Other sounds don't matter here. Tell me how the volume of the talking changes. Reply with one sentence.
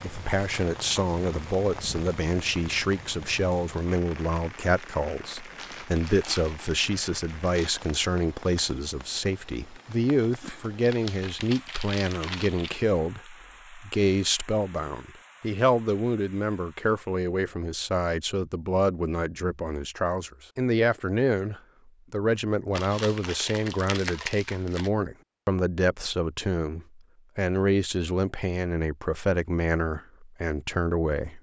The volume of the talking stays about the same.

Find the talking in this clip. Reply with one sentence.
The talking can be heard from 0.0 to 31.3 s.